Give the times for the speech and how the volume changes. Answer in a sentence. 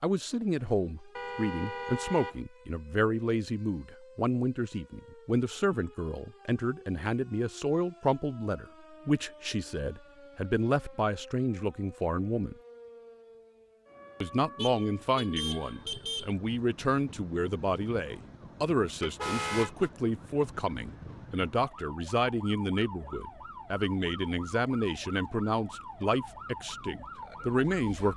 You can hear the speech from 0.0 to 12.6 s, at a steady volume; and from 14.2 to 28.1 s, at a steady volume.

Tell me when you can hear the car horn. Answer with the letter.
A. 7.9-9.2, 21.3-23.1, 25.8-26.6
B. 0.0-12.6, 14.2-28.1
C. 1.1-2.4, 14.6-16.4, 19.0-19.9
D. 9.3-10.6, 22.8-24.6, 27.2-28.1
C.